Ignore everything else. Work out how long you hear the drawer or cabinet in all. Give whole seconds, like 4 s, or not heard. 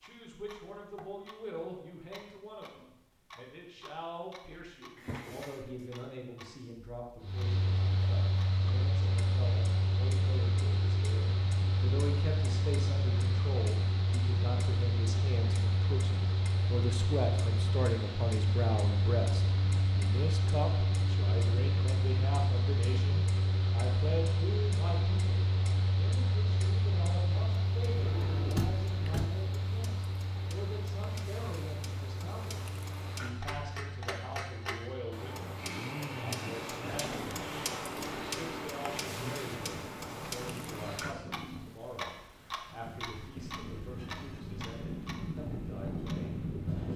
3 s.